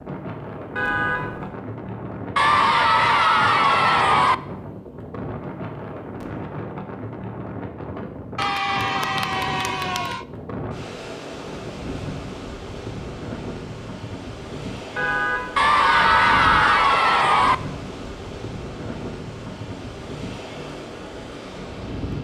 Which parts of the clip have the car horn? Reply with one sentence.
You can hear the car horn from 0.8 to 1.5 s and from 14.9 to 16.9 s.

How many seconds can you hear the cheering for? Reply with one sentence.
The cheering can be heard for 6 seconds in total.